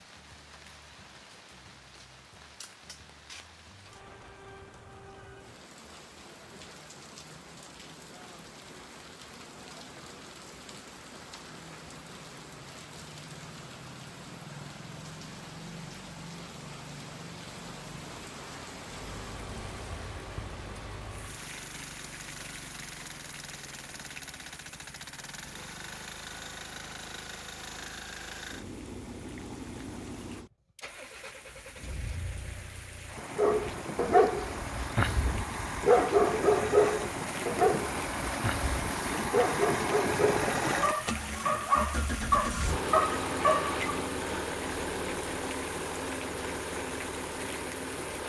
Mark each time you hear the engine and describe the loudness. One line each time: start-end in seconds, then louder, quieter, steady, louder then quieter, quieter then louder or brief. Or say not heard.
18.9-48.2 louder.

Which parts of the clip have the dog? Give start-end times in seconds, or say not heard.
33.4-43.8.